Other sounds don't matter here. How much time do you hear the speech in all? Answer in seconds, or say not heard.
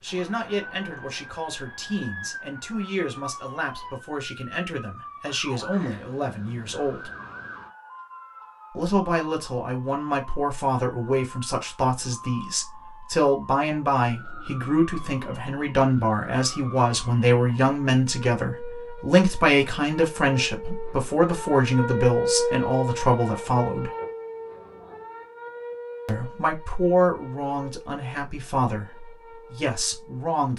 27 s.